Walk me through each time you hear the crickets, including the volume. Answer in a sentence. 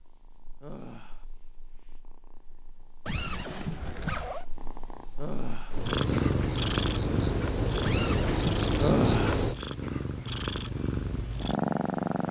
The crickets can be heard from 5.5 to 12.2 s, getting louder then quieter.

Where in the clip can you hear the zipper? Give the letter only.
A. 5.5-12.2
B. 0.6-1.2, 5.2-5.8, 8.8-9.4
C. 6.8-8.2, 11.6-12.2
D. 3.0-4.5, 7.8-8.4
D.